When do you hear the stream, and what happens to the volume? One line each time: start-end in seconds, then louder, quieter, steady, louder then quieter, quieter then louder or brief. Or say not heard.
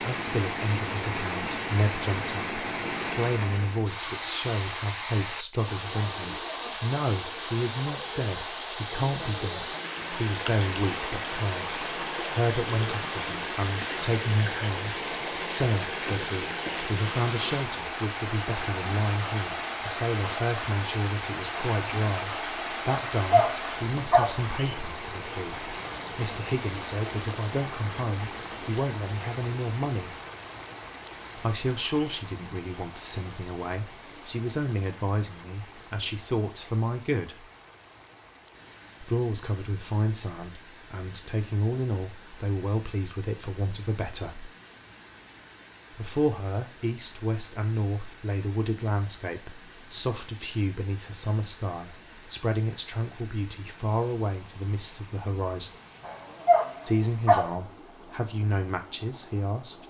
0.0-59.8 quieter.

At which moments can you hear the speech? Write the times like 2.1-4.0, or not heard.
0.0-30.1, 31.4-37.5, 39.0-44.5, 45.9-55.7, 56.9-59.8.